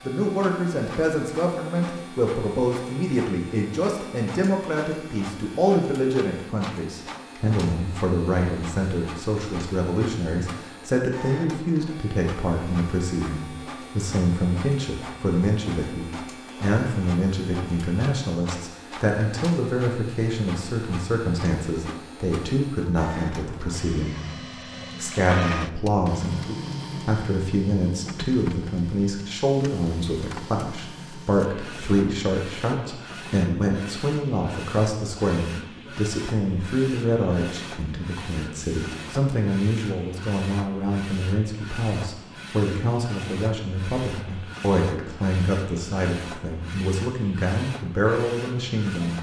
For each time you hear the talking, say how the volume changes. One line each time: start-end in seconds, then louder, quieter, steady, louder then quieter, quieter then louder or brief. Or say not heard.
0.0-49.1 steady.